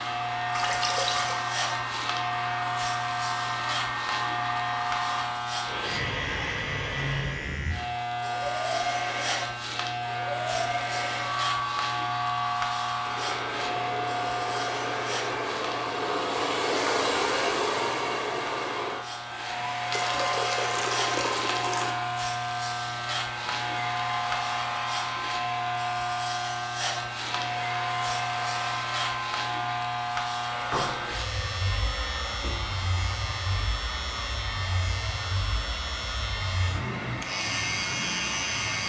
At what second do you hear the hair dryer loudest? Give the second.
17 s.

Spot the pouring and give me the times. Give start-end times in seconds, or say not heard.
0.5-1.4, 19.9-21.9.